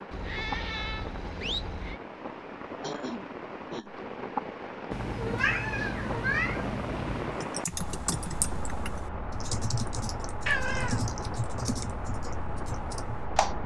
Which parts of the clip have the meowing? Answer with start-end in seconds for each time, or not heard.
0.1-2.0, 4.9-7.4, 10.4-11.0.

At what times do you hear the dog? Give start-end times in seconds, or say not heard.
not heard.